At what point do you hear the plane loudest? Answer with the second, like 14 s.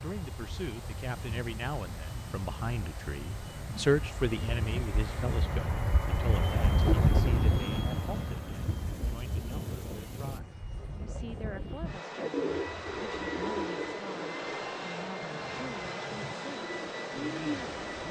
7 s.